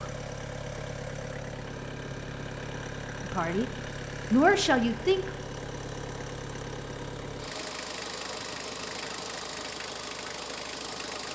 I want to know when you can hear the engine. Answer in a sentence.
The engine can be heard from 0.0 to 11.3 s.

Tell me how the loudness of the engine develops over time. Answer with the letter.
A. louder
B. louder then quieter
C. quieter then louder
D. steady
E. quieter
D.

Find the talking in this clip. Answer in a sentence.
The talking can be heard from 3.2 to 3.6 s and from 4.3 to 5.3 s.